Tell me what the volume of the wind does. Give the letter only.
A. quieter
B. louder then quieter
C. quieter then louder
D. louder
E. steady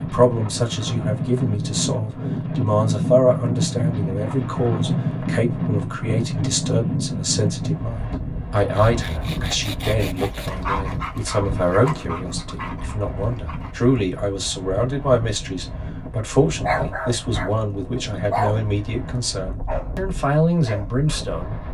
A.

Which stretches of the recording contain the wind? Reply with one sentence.
You can hear the wind from 0.0 to 21.6 s.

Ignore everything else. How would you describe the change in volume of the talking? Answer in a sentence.
The volume of the talking stays about the same.